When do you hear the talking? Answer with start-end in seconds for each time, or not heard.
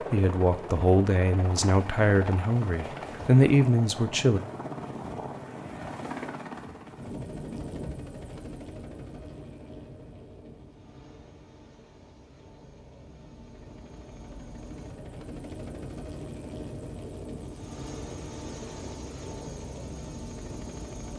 0.1-4.4.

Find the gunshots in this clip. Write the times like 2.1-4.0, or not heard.
not heard.